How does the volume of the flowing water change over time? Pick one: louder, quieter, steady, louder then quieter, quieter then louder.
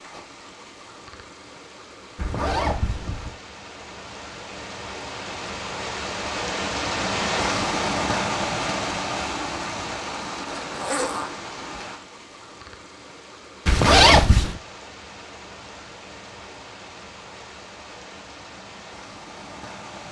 louder then quieter.